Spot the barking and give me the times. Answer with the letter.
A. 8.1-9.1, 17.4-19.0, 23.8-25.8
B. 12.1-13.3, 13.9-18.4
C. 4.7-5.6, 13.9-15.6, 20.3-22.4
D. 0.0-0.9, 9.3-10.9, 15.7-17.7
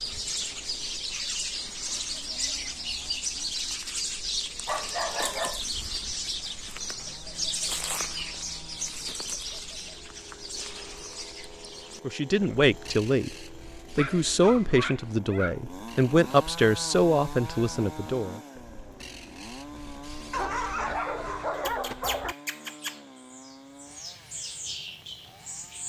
C.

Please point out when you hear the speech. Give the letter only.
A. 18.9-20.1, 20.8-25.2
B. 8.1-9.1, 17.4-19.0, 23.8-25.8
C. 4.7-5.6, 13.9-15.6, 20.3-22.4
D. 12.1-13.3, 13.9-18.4
D.